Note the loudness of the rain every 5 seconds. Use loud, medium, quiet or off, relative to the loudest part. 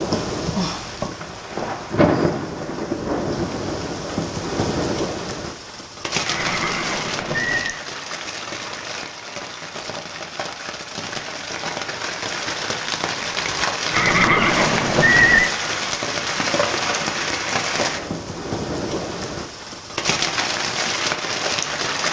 loud, medium, loud, loud, loud.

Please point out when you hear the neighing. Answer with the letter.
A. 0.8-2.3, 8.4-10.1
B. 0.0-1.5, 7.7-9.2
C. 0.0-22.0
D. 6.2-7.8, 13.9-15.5
D.